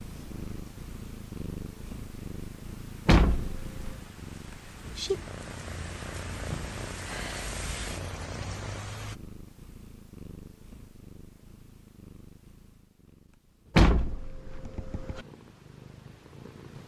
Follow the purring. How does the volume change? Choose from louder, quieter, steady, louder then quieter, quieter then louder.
quieter.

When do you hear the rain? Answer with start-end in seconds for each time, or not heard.
0.2-9.2.